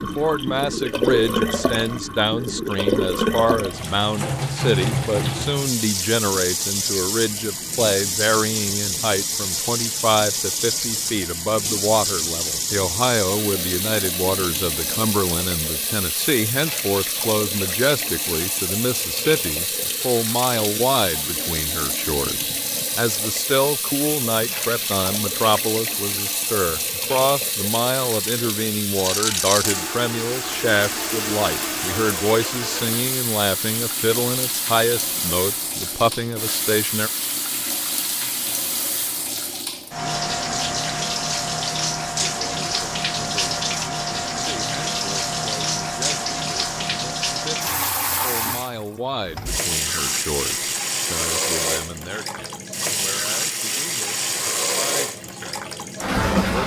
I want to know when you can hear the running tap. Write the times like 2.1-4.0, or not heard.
0.0-56.6.